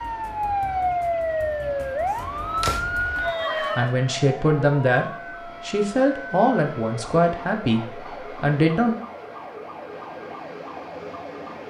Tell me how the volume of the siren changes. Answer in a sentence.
The volume of the siren goes down.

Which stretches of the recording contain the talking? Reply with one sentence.
You can hear the talking from 3.8 to 5.0 s and from 5.7 to 8.9 s.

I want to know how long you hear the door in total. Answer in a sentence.
You can hear the door for 2 seconds altogether.